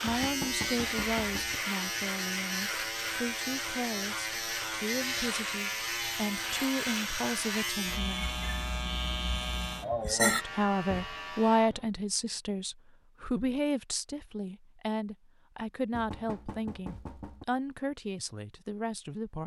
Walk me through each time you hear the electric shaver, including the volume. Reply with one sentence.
The electric shaver can be heard from 0.0 to 11.9 s, getting quieter.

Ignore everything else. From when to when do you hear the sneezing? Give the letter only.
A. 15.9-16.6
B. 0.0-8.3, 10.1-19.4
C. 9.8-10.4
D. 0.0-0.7
C.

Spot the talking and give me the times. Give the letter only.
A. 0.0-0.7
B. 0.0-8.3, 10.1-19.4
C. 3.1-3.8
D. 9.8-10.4
B.